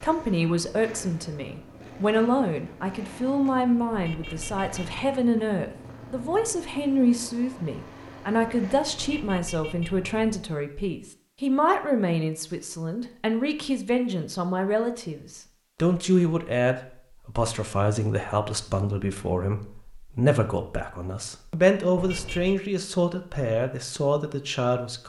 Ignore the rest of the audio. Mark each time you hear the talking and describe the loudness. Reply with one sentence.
You can hear the talking from 0.0 to 25.0 s, at a steady volume.